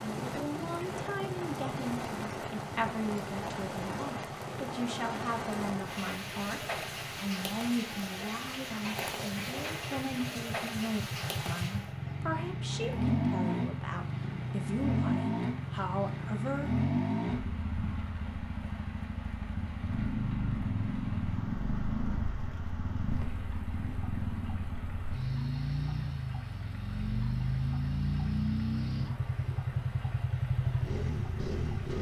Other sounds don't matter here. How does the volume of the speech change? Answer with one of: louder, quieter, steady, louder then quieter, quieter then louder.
steady.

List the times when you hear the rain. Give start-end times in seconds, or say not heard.
0.0-31.9.